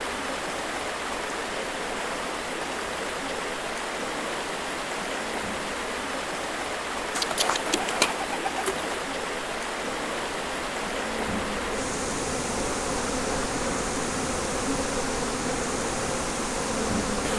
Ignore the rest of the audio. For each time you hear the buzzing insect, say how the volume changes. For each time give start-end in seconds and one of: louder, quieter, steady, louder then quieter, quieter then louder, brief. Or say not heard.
0.0-17.3 louder.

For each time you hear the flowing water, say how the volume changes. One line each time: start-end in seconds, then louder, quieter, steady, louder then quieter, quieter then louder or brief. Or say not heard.
0.0-17.3 steady.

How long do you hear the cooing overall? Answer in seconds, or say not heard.
2 s.